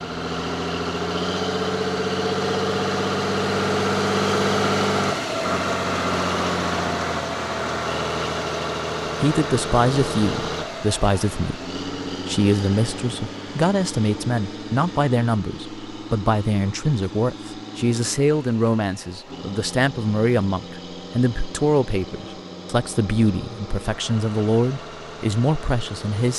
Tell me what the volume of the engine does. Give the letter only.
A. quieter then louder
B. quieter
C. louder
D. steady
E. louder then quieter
B.